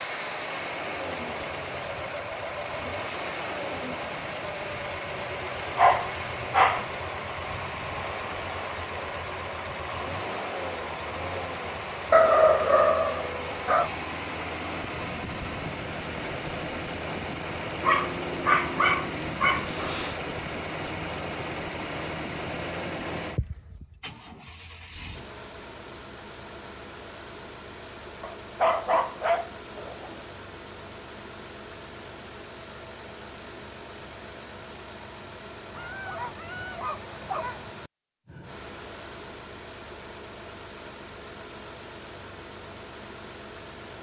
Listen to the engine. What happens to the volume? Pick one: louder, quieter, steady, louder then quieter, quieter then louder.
quieter.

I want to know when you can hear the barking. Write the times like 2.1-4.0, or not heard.
5.8-6.8, 12.1-13.9, 17.8-20.1, 28.2-30.2, 35.8-37.6.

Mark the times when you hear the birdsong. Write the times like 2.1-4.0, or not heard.
not heard.